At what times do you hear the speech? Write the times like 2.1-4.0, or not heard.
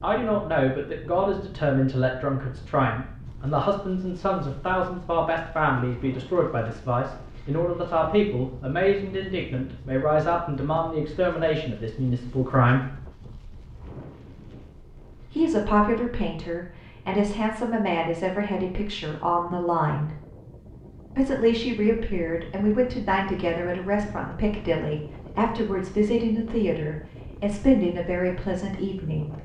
0.0-12.8, 15.3-20.1, 21.1-29.3.